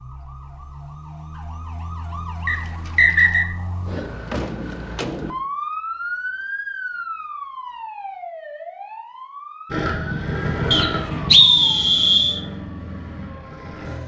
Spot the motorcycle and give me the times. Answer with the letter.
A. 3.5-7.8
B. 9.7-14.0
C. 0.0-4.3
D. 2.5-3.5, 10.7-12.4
B.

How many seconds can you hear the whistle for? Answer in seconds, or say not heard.
3 s.